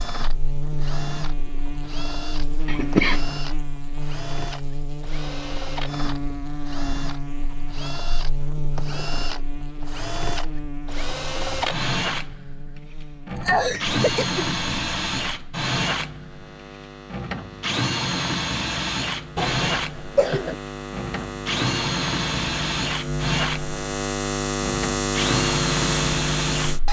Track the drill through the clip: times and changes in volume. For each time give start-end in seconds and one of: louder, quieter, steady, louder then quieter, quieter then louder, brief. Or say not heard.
0.0-26.8 louder.